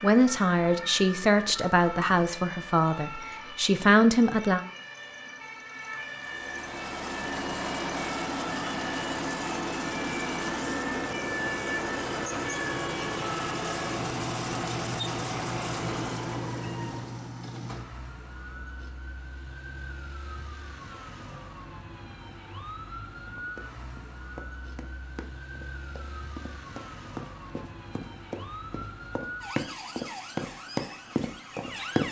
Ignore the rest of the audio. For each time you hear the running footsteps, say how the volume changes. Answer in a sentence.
The running footsteps can be heard from 23.4 to 32.0 s, getting louder.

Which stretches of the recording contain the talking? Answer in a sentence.
The talking can be heard from 0.0 to 4.7 s.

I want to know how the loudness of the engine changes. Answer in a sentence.
The volume of the engine stays about the same.